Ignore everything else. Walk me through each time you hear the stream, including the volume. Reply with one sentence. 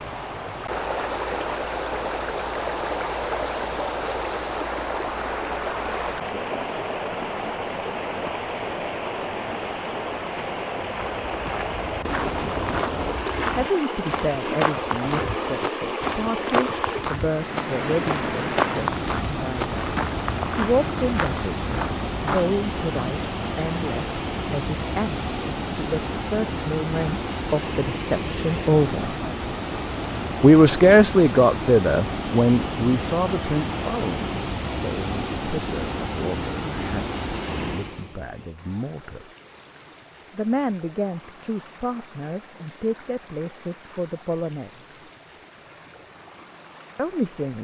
You can hear the stream from 0.0 to 47.5 s, getting quieter.